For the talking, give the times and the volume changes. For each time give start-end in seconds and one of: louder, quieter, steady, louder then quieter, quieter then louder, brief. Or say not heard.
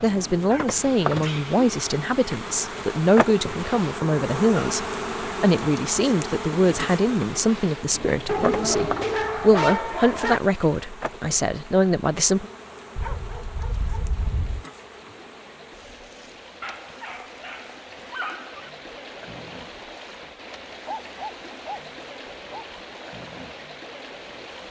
0.0-12.5 steady.